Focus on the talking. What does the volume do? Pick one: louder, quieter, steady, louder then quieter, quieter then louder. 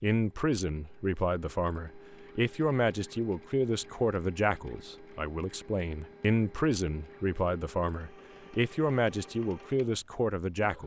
steady.